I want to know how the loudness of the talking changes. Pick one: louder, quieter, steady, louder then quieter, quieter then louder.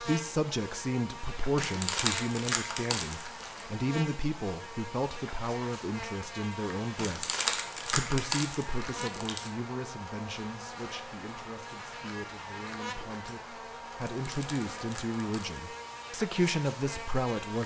quieter then louder.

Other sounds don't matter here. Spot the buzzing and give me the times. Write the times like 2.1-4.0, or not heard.
0.0-17.6.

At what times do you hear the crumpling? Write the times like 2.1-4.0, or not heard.
1.6-3.6, 7.0-9.5, 14.0-15.6.